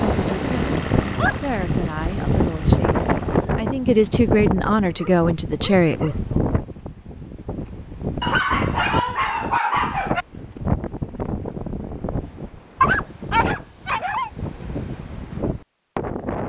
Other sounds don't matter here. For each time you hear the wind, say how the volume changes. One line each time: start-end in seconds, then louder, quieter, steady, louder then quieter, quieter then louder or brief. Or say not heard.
0.0-16.4 quieter.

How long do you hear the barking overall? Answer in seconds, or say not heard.
7 s.